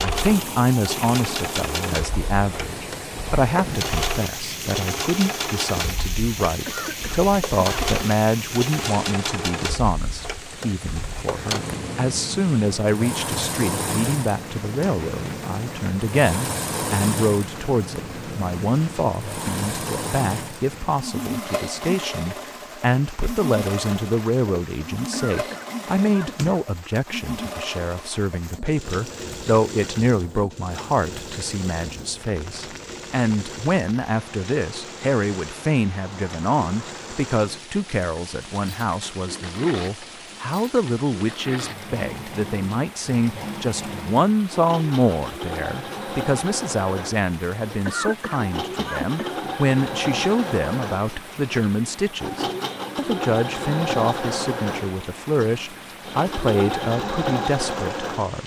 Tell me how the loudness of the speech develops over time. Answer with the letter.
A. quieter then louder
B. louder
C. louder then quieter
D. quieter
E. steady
E.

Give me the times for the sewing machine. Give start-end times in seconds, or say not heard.
0.0-58.4.